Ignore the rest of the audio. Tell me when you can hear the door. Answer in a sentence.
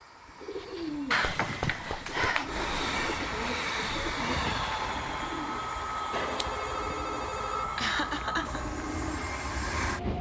You can't hear the door here.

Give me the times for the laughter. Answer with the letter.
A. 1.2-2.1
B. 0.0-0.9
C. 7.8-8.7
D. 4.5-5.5
C.